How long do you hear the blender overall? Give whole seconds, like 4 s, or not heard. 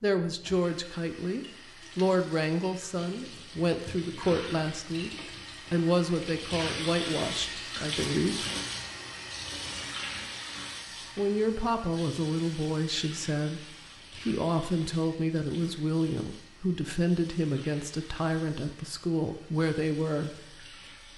not heard.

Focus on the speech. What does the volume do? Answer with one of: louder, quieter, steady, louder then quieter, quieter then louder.
steady.